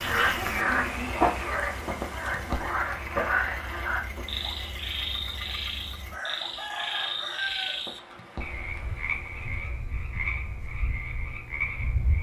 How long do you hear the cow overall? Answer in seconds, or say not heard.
not heard.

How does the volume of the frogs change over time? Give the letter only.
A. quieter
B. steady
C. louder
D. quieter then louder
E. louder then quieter
A.